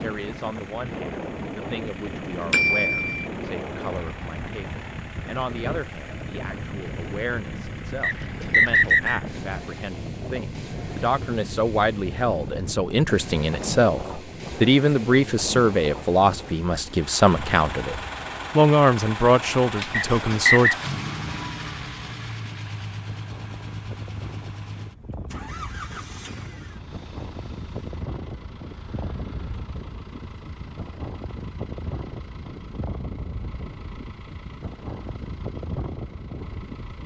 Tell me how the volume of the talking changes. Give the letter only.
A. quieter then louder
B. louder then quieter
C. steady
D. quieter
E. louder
E.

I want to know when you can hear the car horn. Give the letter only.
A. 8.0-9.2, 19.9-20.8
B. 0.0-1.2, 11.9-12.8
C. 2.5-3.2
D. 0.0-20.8
C.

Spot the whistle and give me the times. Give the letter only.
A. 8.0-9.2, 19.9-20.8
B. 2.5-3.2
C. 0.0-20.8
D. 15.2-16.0
A.